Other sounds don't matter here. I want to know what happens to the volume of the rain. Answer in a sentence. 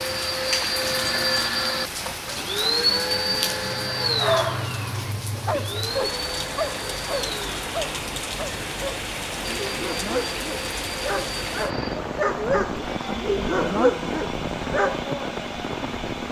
The volume of the rain stays about the same.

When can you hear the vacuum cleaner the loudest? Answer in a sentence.
The loudest moment of the vacuum cleaner is at 3 seconds.